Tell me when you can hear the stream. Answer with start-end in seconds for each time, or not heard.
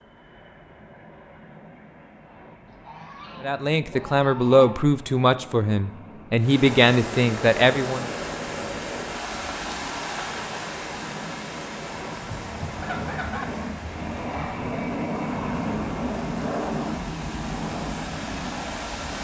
6.3-19.1.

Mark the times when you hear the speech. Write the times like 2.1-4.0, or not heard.
3.4-8.1.